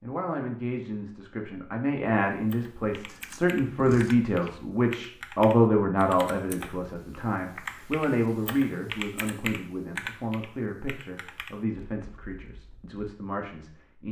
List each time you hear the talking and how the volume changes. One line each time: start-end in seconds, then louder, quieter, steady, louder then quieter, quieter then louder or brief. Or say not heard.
0.0-14.0 louder then quieter.